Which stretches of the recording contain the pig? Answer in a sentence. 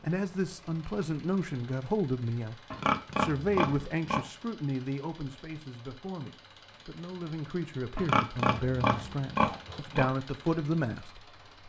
You can hear the pig from 2.7 to 4.2 s and from 8.0 to 10.1 s.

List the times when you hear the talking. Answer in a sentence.
You can hear the talking from 0.0 to 11.4 s.